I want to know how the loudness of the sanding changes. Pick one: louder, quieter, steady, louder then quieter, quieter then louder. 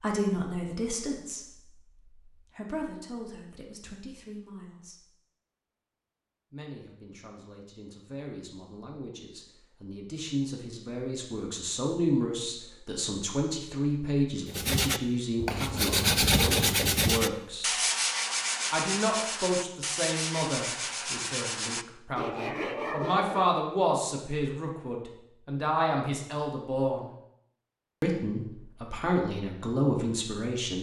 quieter.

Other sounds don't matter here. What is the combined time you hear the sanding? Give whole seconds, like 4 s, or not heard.
9 s.